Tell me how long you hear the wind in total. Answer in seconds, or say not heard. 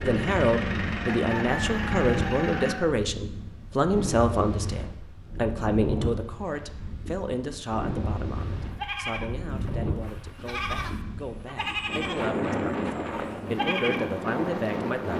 15 s.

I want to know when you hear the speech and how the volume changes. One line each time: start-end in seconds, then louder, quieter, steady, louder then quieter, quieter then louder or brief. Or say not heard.
0.0-15.1 quieter then louder.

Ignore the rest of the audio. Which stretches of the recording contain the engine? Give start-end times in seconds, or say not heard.
0.0-2.8.